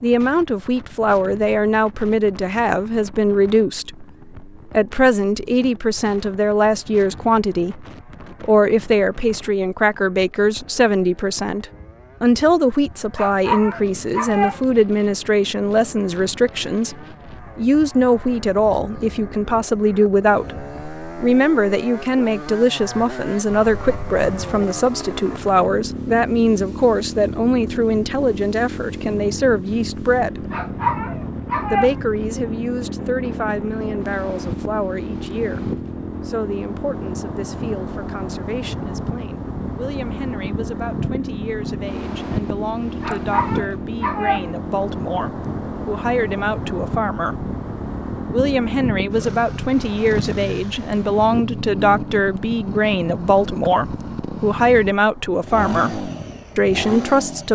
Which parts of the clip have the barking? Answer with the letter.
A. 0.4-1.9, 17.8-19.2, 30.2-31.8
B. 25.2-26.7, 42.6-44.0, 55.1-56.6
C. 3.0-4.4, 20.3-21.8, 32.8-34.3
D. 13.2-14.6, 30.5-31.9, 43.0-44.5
D.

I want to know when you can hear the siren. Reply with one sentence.
You can't hear the siren here.